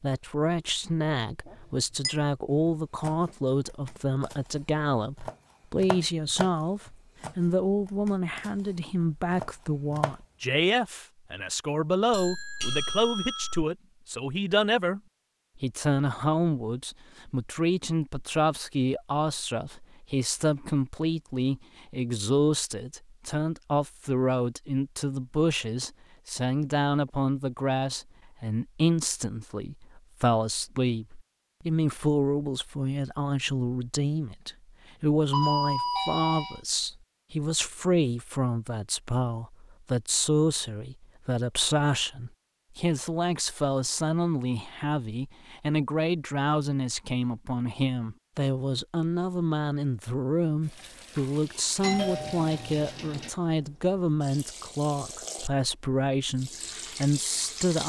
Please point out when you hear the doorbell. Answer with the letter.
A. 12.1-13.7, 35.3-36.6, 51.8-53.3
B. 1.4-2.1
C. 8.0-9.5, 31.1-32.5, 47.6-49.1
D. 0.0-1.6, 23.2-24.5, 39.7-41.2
A.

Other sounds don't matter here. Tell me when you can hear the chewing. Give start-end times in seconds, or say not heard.
not heard.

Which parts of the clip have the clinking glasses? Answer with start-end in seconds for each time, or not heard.
1.4-2.1.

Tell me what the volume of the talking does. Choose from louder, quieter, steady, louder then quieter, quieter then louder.
steady.